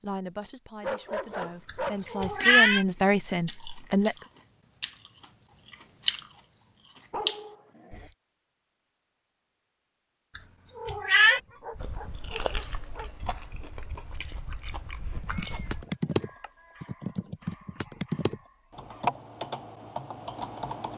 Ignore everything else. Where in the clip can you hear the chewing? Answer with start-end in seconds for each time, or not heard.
1.2-8.2, 11.8-15.8.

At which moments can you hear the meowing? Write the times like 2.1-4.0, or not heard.
1.6-2.9, 10.3-11.4, 14.8-16.8.